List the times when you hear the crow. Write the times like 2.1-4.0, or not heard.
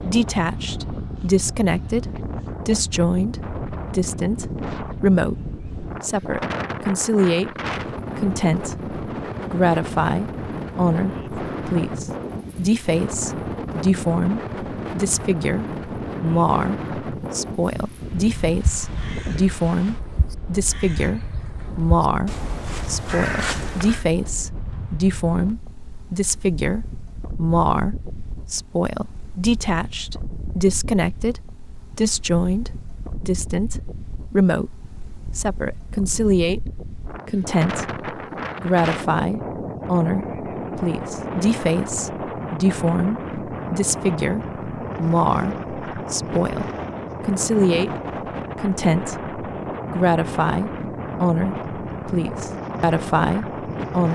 18.4-24.1.